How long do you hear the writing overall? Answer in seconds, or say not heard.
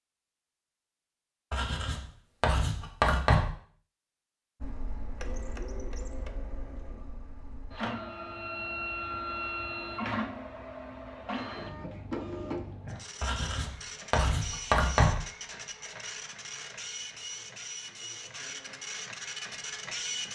4 s.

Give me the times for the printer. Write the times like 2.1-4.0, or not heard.
4.6-20.2.